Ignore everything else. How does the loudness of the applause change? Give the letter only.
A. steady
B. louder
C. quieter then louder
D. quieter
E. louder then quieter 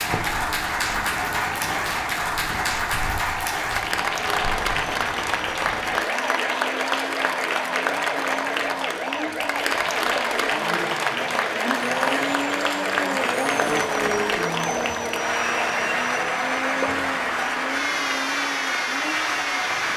A.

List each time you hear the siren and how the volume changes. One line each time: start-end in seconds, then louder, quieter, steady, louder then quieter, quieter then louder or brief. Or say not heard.
0.0-19.9 steady.